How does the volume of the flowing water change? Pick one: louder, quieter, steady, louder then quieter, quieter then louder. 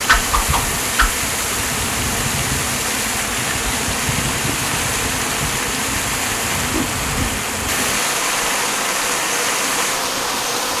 steady.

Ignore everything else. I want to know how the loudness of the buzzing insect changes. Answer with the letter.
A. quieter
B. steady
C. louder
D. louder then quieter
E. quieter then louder
B.